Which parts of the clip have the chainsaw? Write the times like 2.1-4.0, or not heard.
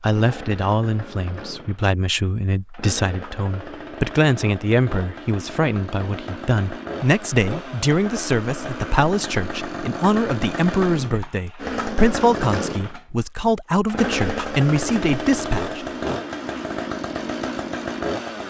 0.1-18.4.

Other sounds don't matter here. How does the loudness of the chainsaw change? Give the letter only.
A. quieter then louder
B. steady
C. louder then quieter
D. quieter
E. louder
E.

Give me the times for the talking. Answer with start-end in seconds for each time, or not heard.
0.0-16.2.